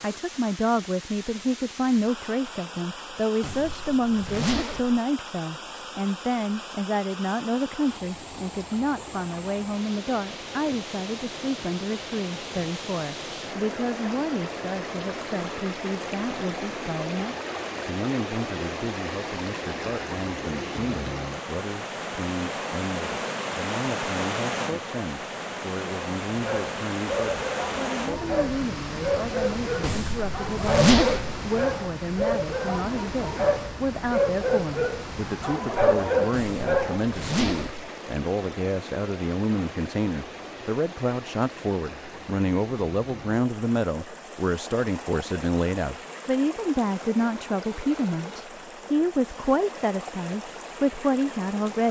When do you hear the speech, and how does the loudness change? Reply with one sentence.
You can hear the speech from 0.0 to 51.8 s, getting quieter then louder.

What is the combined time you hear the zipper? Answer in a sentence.
You can hear the zipper for 5 seconds altogether.